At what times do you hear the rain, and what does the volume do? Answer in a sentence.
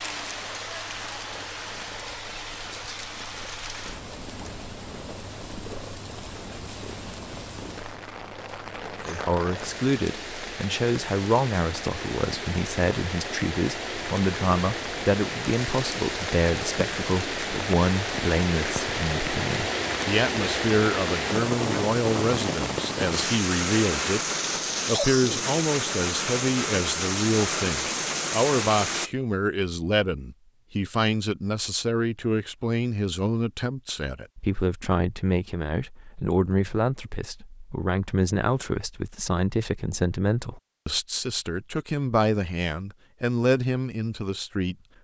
The rain can be heard from 0.0 to 29.1 s, getting louder.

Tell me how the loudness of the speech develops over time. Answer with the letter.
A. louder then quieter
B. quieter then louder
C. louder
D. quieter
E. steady
E.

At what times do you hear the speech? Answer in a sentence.
You can hear the speech from 9.1 to 24.2 s and from 24.9 to 44.8 s.